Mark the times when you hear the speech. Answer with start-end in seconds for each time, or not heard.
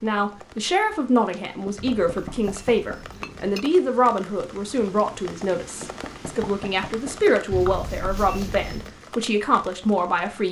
0.0-10.4.